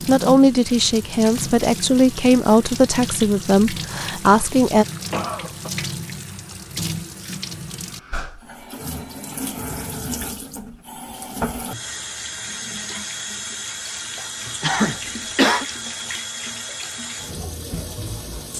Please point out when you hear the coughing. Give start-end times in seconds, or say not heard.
5.1-5.7, 14.6-15.7.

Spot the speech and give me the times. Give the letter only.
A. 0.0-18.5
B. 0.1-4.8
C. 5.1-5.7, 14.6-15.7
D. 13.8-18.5
B.